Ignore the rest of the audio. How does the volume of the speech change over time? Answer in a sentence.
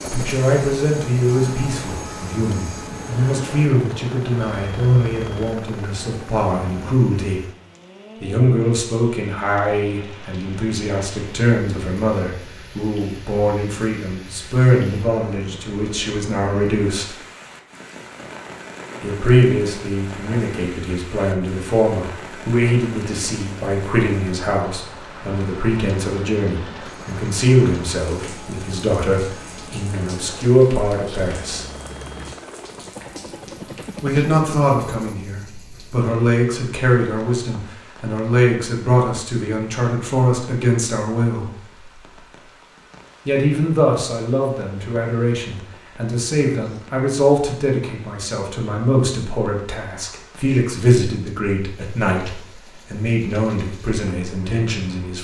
The volume of the speech stays about the same.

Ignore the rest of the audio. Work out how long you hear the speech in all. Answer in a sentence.
The speech can be heard for 48 seconds in total.